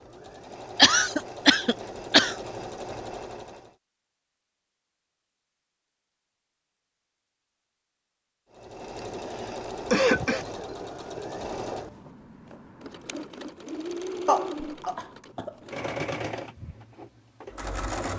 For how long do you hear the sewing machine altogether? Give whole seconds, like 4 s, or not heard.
13 s.